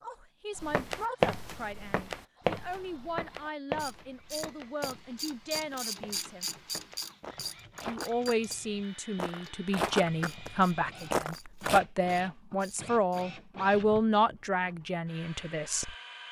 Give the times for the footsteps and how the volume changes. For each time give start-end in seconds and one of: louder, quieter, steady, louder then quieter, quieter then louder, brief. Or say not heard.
0.6-8.6 quieter then louder
9.2-10.5 brief
11.1-11.8 brief.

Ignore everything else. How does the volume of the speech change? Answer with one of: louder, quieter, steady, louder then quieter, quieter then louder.
louder.